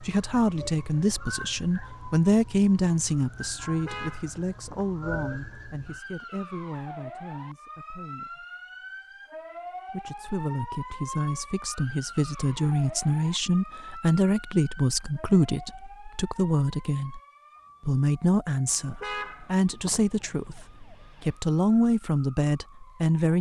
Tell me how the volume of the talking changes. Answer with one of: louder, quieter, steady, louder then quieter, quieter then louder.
quieter then louder.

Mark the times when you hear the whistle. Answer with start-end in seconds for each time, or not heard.
not heard.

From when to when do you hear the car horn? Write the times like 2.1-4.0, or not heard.
3.6-4.8, 18.7-20.0.